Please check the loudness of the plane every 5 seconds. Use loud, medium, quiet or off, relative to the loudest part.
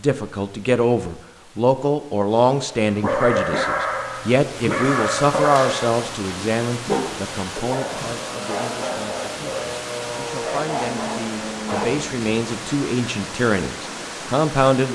off, loud, loud.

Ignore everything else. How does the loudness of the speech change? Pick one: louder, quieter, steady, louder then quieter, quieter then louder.
quieter then louder.